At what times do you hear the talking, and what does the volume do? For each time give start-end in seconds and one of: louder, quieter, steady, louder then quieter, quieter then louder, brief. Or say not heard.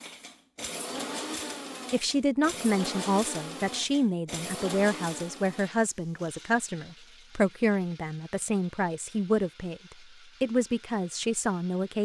1.9-12.0 steady.